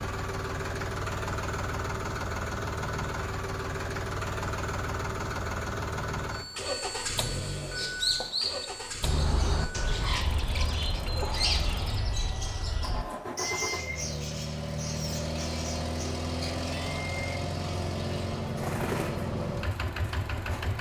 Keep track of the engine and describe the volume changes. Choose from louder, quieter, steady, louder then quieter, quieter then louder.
quieter then louder.